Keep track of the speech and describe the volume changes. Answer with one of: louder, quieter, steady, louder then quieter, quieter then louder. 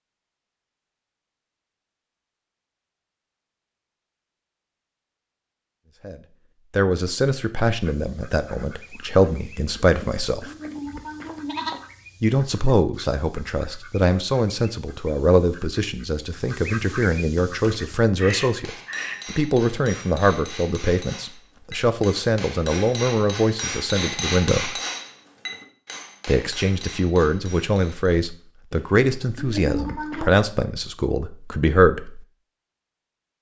steady.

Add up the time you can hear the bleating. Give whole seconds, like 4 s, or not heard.
4 s.